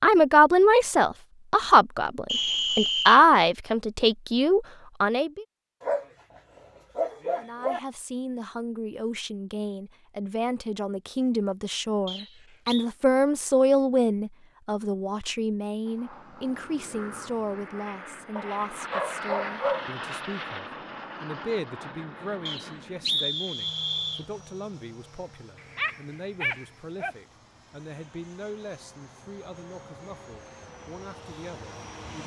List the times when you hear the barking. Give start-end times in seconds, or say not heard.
5.8-7.8, 18.4-19.9, 25.6-27.1.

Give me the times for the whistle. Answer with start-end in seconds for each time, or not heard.
2.2-3.2, 12.1-12.8, 22.4-24.2.